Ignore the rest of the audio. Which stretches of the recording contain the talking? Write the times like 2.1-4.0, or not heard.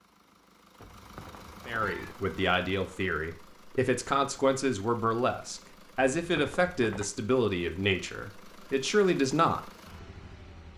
1.6-9.7.